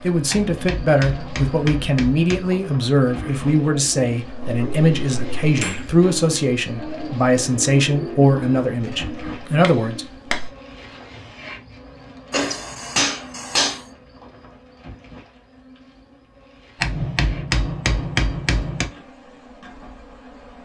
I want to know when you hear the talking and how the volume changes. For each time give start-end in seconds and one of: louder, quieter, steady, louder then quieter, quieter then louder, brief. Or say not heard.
0.0-10.1 steady.